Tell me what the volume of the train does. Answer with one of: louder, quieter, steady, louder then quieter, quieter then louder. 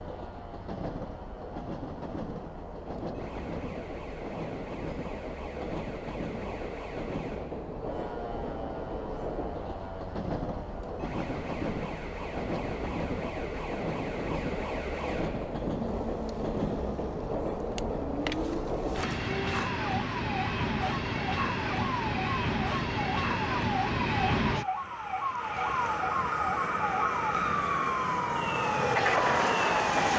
louder.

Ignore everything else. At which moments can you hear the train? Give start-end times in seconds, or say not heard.
0.0-30.1.